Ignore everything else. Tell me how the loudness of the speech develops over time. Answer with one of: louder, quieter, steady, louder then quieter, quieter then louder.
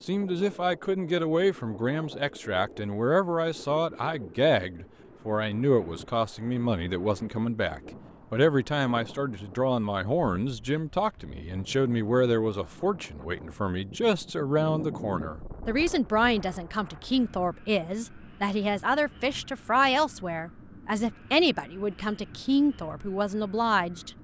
steady.